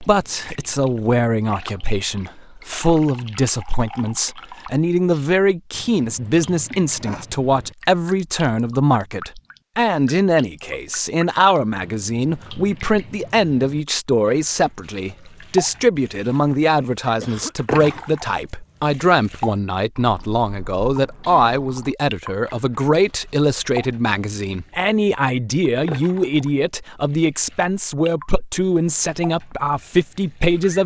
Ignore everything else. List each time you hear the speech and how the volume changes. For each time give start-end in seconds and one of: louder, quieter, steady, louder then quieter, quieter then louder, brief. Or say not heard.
0.0-30.8 steady.